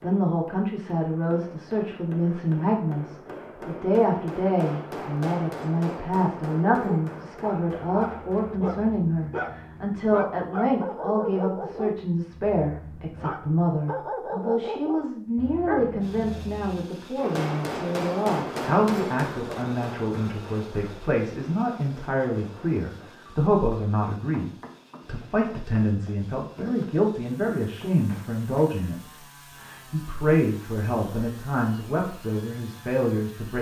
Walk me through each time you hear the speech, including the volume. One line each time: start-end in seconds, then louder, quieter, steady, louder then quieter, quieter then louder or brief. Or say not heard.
0.0-33.5 steady.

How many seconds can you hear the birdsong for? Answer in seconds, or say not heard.
not heard.